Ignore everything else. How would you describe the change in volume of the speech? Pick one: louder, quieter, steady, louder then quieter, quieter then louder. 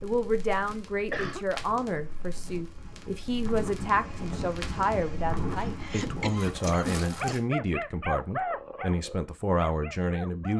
steady.